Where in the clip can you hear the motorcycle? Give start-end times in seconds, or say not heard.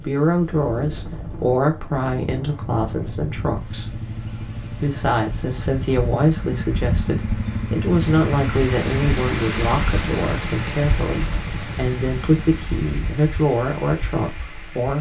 2.4-12.7.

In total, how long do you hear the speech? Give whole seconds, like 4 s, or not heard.
15 s.